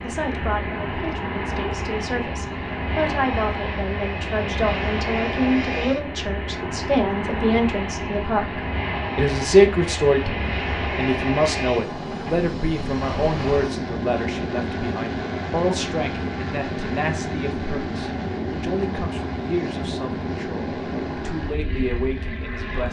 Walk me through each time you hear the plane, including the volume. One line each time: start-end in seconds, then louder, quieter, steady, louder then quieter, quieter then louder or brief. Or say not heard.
0.0-22.8 steady.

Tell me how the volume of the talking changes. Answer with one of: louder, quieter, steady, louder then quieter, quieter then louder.
louder then quieter.